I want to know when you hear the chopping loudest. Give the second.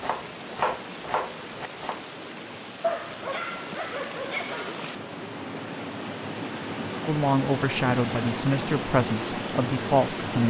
1 s.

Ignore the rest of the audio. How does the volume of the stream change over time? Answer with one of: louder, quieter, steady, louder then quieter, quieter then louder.
louder.